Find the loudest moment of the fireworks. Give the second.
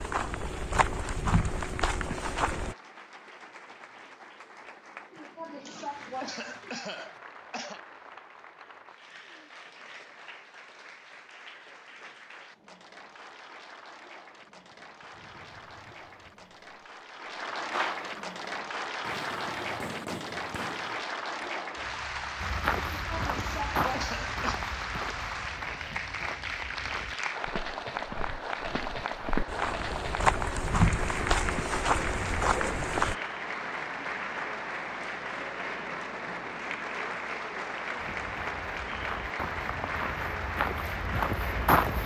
18 s.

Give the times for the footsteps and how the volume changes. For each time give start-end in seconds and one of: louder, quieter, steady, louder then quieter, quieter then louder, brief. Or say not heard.
0.0-2.8 brief
22.4-33.1 quieter then louder
38.0-42.0 louder.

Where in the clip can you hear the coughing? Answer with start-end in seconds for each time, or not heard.
5.1-7.8, 22.9-24.6.